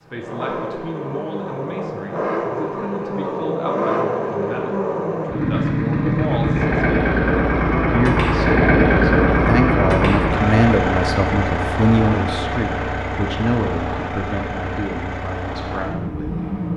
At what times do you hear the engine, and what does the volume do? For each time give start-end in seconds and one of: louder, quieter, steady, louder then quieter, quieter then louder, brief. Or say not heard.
0.0-16.7 louder then quieter.